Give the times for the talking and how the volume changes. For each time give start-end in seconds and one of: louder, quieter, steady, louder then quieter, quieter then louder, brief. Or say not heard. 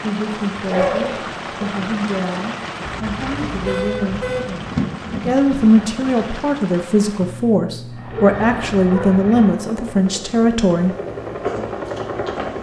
0.0-10.9 louder.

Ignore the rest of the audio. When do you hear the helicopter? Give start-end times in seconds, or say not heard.
7.9-12.5.